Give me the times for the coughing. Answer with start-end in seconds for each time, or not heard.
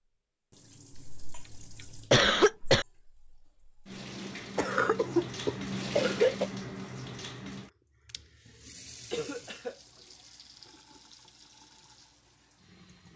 0.9-2.9, 4.5-6.5, 9.1-9.8.